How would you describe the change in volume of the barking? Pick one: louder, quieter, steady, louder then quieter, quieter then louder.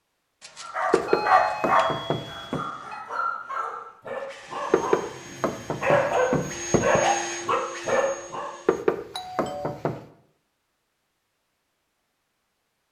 quieter then louder.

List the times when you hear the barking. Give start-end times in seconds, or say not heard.
0.6-8.5.